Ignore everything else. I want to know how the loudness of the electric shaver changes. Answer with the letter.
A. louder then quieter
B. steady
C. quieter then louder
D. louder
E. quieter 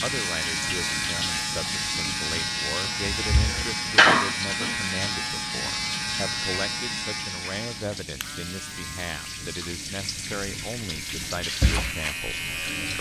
C.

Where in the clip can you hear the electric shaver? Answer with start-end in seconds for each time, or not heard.
0.0-12.9.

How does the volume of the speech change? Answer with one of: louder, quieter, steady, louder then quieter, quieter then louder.
steady.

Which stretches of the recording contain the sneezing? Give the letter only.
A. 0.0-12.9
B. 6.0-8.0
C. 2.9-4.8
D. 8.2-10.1
C.